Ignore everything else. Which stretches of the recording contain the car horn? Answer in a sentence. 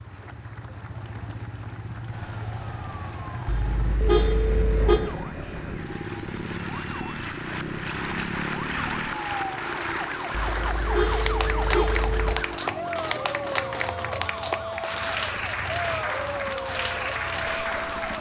You can hear the car horn from 3.5 to 5.0 s and from 10.3 to 12.3 s.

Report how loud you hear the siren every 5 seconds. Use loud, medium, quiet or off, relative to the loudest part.
medium, loud, loud, loud.